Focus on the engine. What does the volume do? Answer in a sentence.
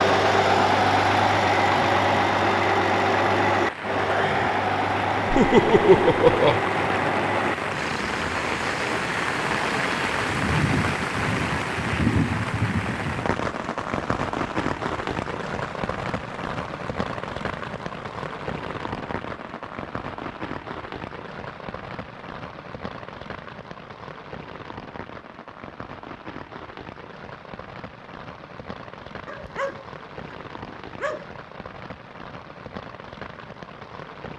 The volume of the engine goes down.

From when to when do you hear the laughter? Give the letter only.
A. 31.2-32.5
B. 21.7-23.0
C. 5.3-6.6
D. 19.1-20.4
C.